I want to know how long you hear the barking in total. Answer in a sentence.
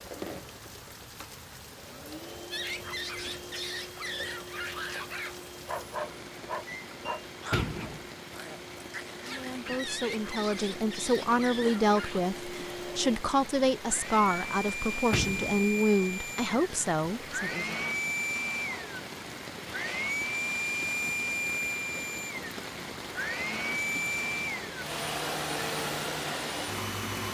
You can hear the barking for 10 seconds altogether.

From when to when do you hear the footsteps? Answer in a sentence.
The footsteps can't be heard in this clip.